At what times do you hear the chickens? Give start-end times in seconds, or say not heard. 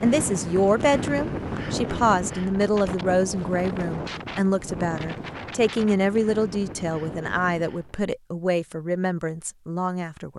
not heard.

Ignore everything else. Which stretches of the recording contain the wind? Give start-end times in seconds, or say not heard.
0.0-8.1.